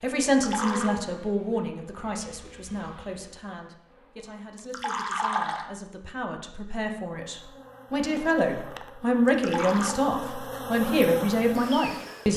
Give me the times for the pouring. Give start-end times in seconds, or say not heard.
0.3-0.9, 4.5-5.7, 9.2-9.9.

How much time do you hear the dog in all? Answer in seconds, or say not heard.
not heard.